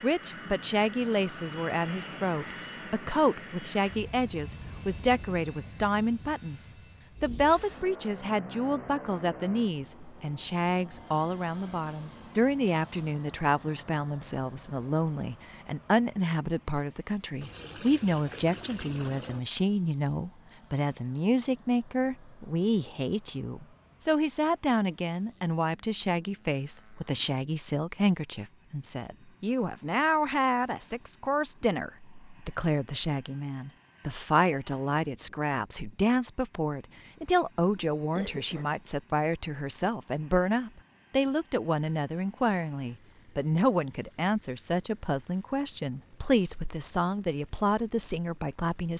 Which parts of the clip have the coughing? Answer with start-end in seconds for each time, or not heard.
37.8-38.7.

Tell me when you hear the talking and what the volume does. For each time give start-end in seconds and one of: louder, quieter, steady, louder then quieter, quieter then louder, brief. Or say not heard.
0.0-48.9 steady.